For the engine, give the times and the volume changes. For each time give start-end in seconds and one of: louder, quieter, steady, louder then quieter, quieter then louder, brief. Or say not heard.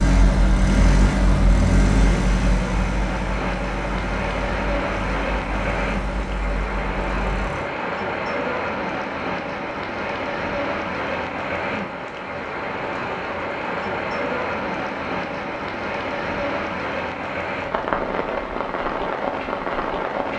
0.0-7.7 quieter.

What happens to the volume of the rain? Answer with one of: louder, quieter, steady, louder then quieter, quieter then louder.
steady.